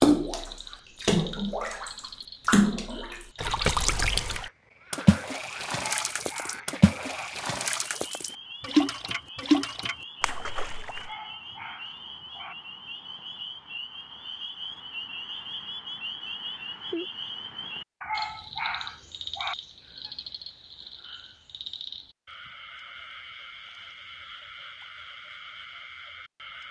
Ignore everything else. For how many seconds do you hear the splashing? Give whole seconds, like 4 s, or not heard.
11 s.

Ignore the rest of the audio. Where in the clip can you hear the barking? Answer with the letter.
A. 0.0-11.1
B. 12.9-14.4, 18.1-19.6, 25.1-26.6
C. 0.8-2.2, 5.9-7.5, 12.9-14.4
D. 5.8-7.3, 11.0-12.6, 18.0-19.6
D.